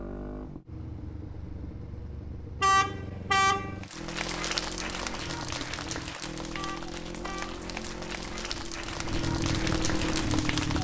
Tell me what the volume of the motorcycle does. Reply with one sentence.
The loudness of the motorcycle goes up.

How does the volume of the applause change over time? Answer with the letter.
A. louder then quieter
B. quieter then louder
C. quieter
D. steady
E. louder
B.